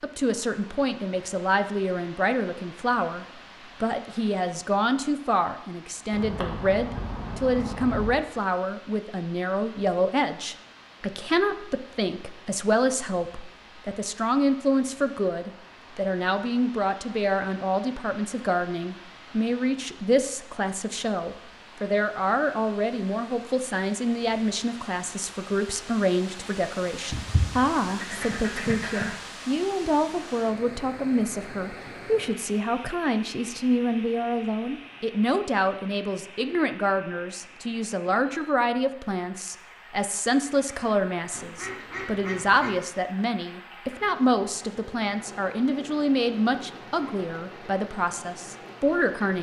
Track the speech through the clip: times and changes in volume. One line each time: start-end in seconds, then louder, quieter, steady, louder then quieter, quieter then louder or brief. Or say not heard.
0.0-49.3 steady.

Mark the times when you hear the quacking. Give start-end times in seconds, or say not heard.
6.1-8.2, 27.1-29.1, 41.3-42.8.